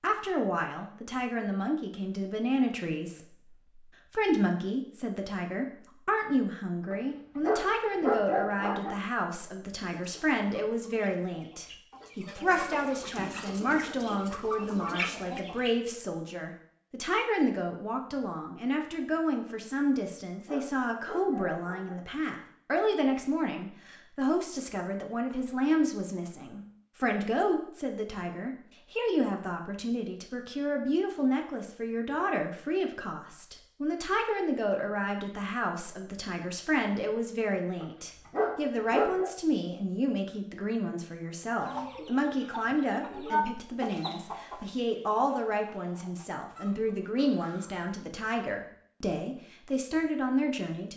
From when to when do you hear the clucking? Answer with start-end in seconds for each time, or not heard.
9.9-15.9, 41.5-47.9.